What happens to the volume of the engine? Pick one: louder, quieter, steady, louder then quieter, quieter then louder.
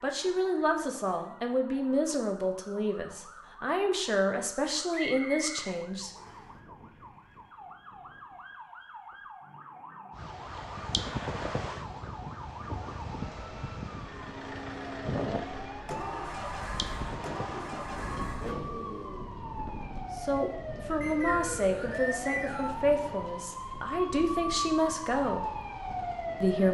steady.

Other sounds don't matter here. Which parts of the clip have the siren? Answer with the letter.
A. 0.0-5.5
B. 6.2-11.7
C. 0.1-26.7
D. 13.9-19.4
C.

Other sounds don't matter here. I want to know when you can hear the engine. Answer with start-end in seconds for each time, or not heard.
13.9-19.4.